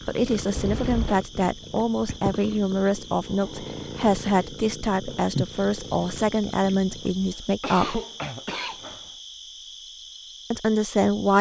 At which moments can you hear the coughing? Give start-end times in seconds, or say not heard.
0.5-1.2, 7.0-9.0.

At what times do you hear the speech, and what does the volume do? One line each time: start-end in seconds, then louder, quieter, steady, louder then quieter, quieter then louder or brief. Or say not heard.
0.1-8.0 steady
10.5-11.3 brief.